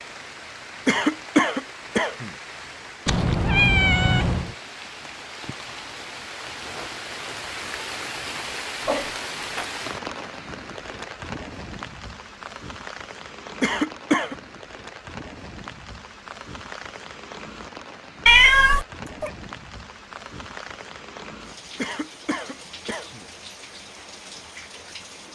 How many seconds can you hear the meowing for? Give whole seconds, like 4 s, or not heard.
3 s.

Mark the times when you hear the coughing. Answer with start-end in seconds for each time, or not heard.
0.8-2.3, 13.6-14.3, 21.8-23.2.